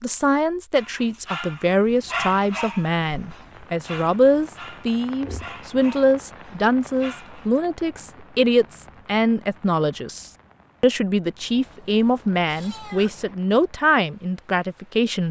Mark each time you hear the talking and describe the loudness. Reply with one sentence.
The talking can be heard from 0.0 to 15.2 s, at a steady volume.